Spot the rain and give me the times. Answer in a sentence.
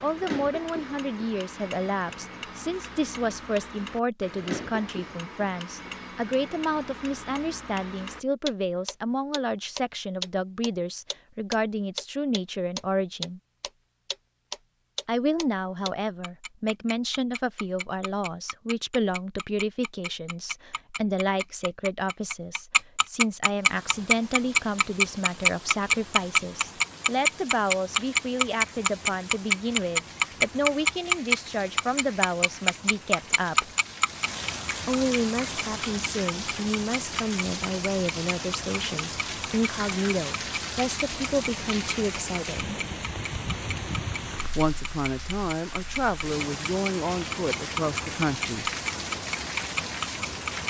The rain can be heard from 23.5 to 50.6 s.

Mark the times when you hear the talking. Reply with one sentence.
The talking can be heard from 0.0 to 13.4 s, from 15.1 to 33.7 s, from 34.9 to 42.8 s and from 44.5 to 48.7 s.